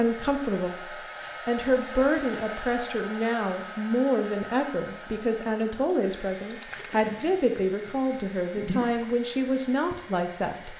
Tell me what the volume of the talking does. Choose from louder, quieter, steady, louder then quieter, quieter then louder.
steady.